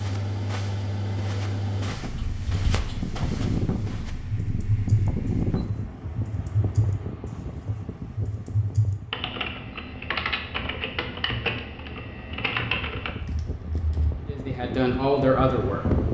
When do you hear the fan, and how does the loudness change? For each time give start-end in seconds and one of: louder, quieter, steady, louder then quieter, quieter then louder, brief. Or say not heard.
0.0-16.0 quieter then louder.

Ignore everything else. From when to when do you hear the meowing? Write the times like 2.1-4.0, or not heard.
not heard.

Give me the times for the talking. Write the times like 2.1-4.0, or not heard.
14.2-15.8.